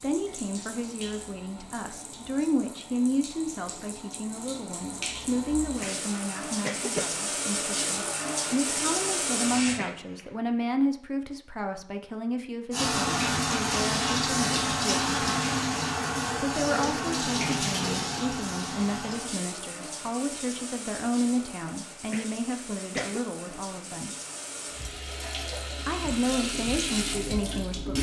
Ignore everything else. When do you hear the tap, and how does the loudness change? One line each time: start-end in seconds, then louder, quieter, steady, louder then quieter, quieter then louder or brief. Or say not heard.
0.0-9.8 louder
12.7-27.9 quieter then louder.